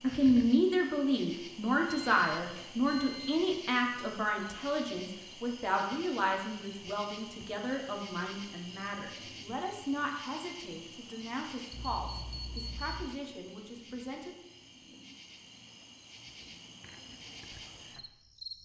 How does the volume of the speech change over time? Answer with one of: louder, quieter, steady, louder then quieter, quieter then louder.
quieter.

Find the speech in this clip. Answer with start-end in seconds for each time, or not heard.
0.0-14.3.